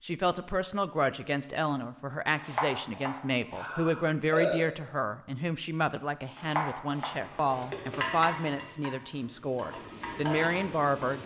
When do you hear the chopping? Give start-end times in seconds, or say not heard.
2.4-3.7, 6.3-7.7.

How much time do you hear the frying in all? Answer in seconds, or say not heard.
4 s.